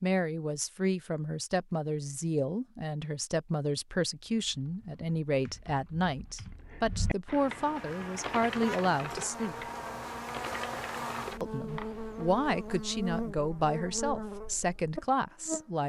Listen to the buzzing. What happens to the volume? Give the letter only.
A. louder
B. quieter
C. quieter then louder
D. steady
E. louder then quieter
D.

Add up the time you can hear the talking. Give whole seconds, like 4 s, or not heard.
14 s.